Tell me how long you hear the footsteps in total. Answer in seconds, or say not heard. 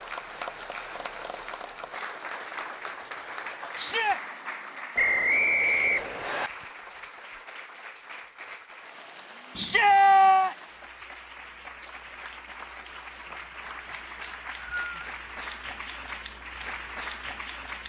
not heard.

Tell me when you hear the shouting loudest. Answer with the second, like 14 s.
10 s.